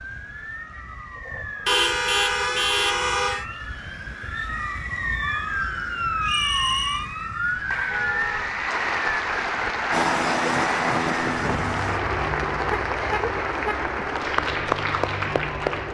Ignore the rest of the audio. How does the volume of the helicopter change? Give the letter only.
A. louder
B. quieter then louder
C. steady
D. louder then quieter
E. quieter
E.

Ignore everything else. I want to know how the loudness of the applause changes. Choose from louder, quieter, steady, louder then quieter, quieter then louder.
steady.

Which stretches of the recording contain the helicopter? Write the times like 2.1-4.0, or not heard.
9.9-15.8.